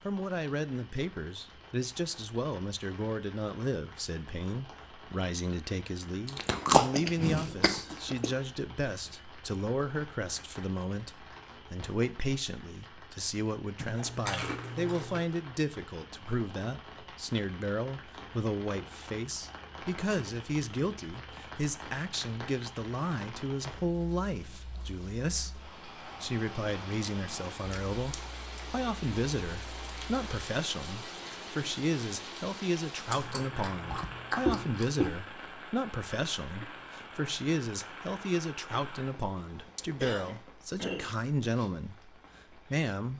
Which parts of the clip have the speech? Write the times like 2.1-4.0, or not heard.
0.1-43.1.